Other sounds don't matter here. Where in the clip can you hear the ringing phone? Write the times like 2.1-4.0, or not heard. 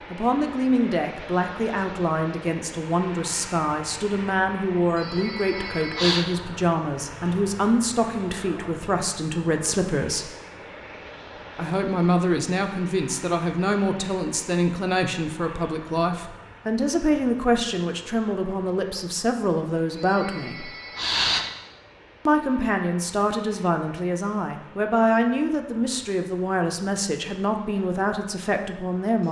5.0-6.2, 19.9-21.5.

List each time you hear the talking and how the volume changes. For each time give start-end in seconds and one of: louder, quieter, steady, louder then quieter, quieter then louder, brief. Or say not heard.
0.1-10.3 steady
11.6-20.7 steady
22.2-29.2 steady.